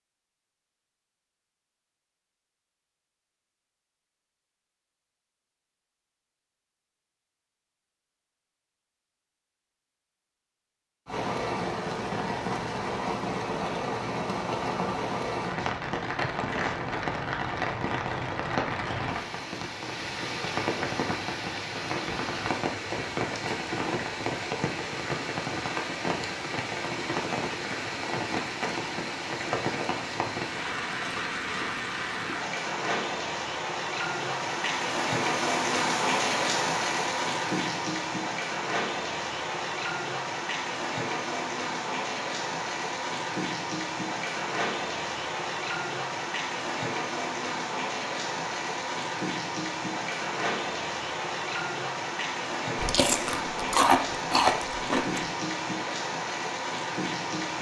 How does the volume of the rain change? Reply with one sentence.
The loudness of the rain stays about the same.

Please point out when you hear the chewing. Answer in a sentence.
You can hear the chewing from 52.8 to 55.2 s.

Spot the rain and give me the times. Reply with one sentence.
The rain can be heard from 11.1 to 57.5 s.